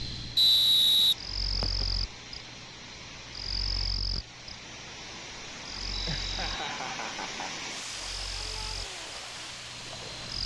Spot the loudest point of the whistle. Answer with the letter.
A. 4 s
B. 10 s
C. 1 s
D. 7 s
C.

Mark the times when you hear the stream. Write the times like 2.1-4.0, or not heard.
0.0-10.4.